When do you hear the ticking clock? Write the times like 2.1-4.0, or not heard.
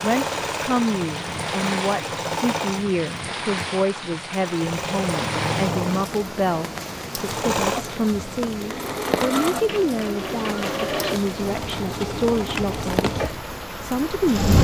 not heard.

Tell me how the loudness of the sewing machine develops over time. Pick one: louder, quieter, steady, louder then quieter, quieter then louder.
steady.